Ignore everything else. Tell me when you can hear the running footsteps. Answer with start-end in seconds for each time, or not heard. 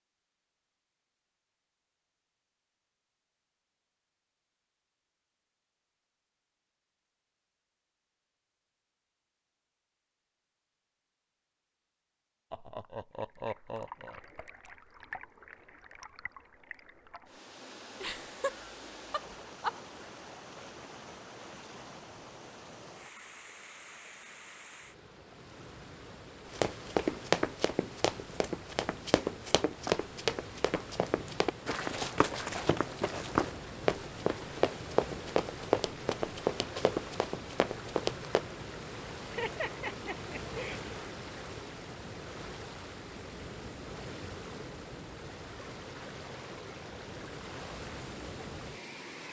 26.5-38.5.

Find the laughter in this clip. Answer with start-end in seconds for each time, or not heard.
12.5-14.2, 18.0-19.7, 39.2-40.8.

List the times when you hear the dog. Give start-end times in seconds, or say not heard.
not heard.